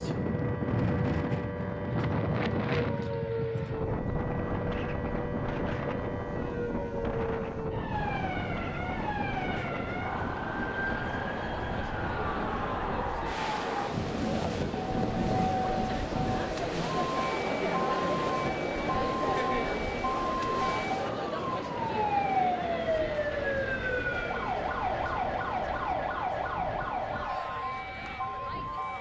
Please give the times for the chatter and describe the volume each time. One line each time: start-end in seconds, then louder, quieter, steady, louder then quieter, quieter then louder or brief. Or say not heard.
7.9-28.9 louder then quieter.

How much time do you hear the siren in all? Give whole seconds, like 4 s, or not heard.
29 s.